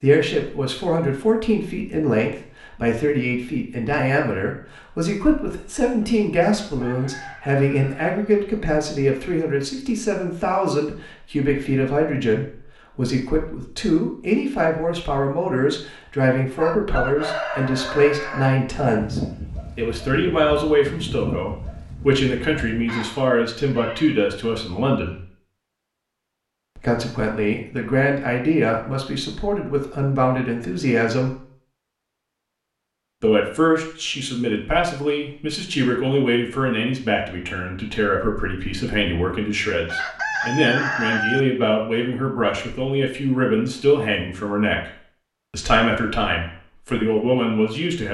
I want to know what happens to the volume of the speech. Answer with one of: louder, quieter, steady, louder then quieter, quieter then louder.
steady.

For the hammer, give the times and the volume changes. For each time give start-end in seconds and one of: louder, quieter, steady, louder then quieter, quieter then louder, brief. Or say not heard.
not heard.